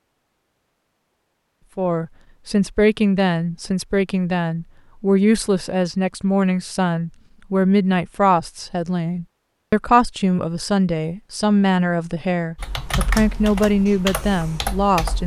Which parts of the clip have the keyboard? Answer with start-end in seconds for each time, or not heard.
12.6-15.2.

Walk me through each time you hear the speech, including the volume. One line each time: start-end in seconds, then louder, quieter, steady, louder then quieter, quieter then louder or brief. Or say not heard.
1.8-15.2 steady.